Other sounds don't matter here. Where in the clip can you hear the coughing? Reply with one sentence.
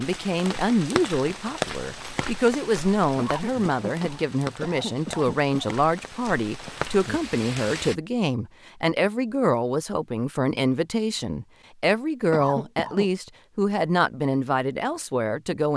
You can hear the coughing from 3.1 to 5.7 s and from 12.3 to 13.1 s.